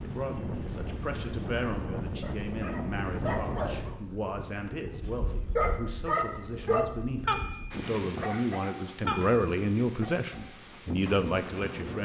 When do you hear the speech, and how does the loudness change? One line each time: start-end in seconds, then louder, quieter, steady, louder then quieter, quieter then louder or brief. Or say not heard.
0.0-12.0 louder.